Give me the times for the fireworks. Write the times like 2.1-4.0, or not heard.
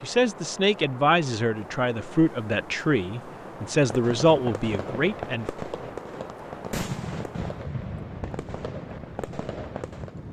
3.4-10.2.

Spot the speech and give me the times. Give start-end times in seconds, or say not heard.
0.0-5.5.